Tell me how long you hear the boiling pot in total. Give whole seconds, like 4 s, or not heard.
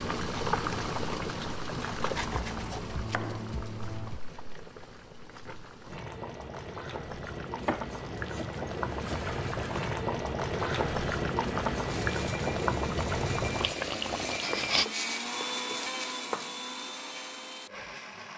15 s.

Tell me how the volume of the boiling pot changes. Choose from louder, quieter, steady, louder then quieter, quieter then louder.
quieter then louder.